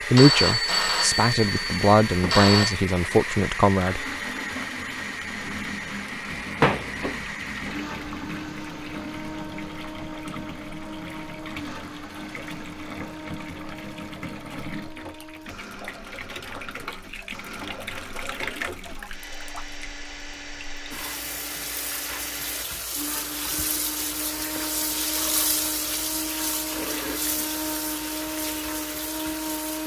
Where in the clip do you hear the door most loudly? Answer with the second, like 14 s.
7 s.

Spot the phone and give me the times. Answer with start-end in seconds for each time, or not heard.
0.1-2.8.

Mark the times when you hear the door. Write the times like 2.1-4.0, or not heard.
6.6-8.1.